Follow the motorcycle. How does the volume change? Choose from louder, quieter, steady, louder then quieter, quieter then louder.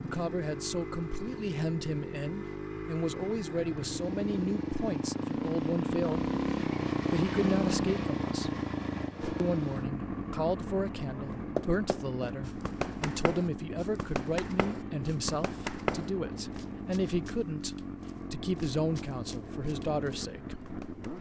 louder then quieter.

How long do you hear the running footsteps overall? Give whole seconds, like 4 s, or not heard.
10 s.